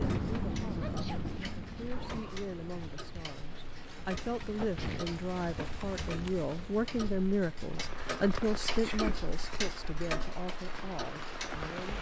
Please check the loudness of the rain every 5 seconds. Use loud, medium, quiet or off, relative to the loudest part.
loud, medium, loud.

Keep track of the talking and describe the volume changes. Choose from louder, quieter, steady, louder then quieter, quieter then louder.
louder then quieter.